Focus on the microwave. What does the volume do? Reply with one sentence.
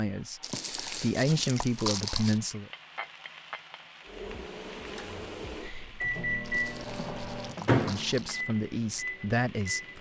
The volume of the microwave goes up, then down.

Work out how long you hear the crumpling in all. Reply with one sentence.
The crumpling can be heard for 4 seconds in total.